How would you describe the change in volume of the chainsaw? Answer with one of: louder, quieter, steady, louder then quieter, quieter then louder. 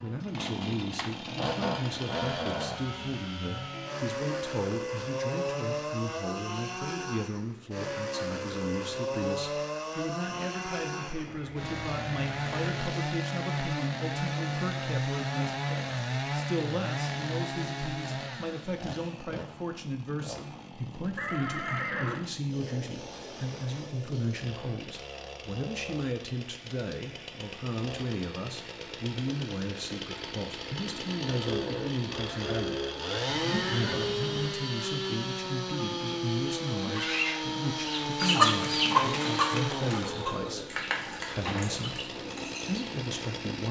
quieter then louder.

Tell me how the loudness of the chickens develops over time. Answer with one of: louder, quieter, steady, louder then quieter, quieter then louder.
louder then quieter.